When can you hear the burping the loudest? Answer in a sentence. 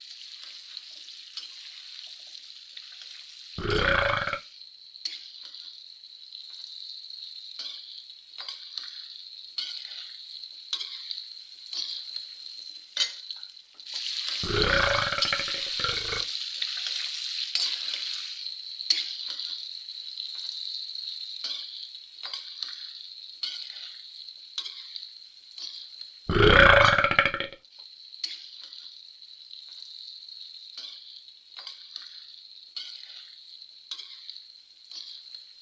The loudest moment of the burping is at 27 seconds.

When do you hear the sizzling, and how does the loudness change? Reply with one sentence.
The sizzling can be heard from 0.0 to 35.5 s, getting louder then quieter.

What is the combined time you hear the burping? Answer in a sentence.
The burping can be heard for 4 seconds in total.